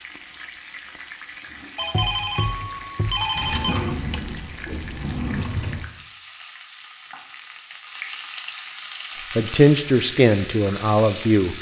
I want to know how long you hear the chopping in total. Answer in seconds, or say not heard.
not heard.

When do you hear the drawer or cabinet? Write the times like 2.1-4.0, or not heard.
3.3-5.9.